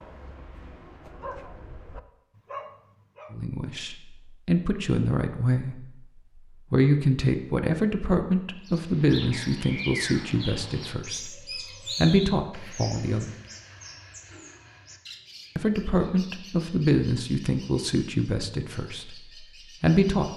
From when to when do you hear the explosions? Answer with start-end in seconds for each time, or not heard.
not heard.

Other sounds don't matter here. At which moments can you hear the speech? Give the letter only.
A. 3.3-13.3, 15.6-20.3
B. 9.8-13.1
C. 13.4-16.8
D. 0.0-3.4
A.